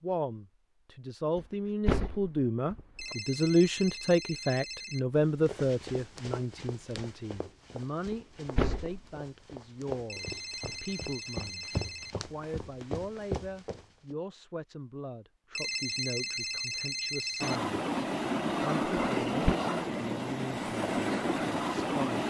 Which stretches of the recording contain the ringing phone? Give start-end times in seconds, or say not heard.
3.0-5.3, 10.1-12.6, 15.6-17.6.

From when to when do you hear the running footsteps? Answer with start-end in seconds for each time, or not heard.
5.2-14.2.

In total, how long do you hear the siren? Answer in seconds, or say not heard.
not heard.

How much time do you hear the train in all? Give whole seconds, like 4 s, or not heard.
5 s.